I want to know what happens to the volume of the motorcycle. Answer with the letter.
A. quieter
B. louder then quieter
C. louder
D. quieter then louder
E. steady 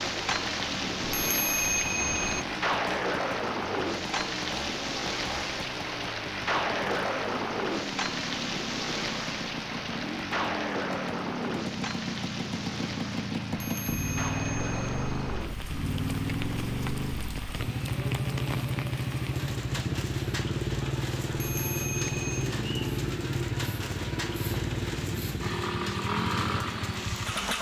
C.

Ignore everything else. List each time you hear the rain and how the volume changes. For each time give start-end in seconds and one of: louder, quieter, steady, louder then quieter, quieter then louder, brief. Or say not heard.
0.0-27.5 quieter.